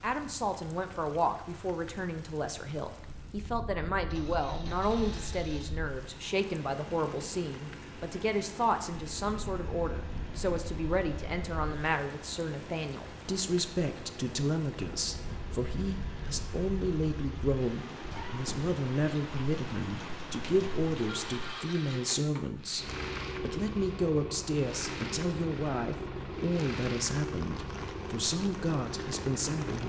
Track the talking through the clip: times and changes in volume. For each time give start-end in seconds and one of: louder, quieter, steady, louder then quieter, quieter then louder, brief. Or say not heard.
0.0-29.8 steady.